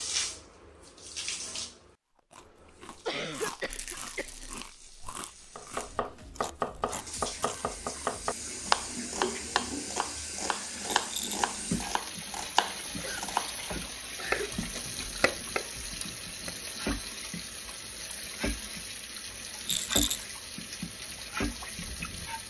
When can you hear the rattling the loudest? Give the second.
20 s.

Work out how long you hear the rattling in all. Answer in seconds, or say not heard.
2 s.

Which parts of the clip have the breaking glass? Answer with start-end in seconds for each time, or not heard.
not heard.